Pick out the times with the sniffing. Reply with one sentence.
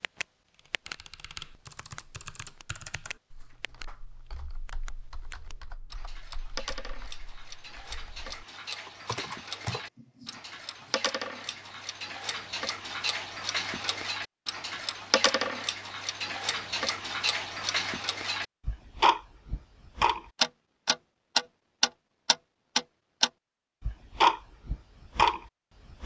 You can't hear the sniffing here.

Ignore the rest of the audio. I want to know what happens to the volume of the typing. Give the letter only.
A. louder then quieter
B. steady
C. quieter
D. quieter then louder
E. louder
D.